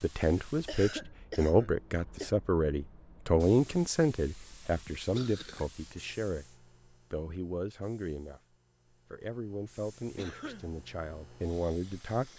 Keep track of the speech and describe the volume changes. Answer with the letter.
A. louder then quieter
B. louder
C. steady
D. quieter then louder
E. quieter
E.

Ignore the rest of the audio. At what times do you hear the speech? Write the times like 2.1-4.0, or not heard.
0.0-8.4, 9.1-12.3.